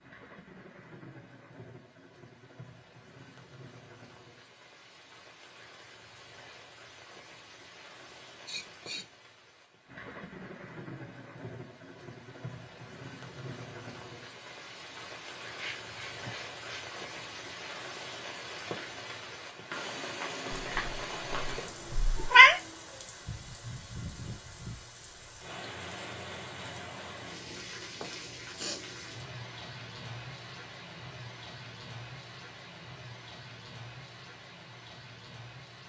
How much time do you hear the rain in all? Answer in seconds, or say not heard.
36 s.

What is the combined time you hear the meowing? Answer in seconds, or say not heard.
2 s.